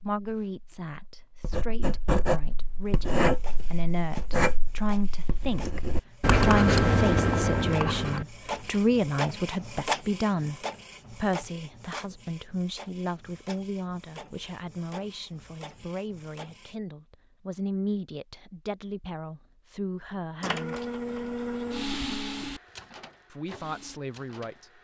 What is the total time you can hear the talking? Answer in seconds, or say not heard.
22 s.